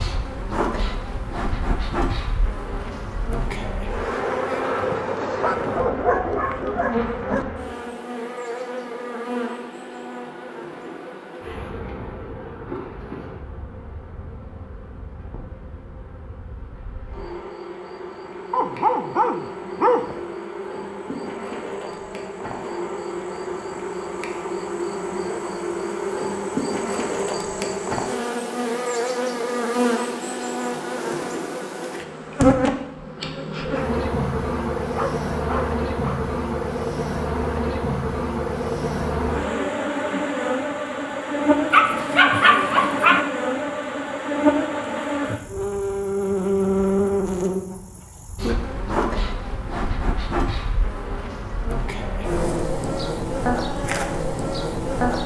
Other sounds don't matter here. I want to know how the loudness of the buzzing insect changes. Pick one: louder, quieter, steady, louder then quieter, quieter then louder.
quieter then louder.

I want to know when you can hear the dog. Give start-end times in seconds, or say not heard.
5.4-7.5, 18.5-20.2, 34.8-36.2, 41.7-43.2.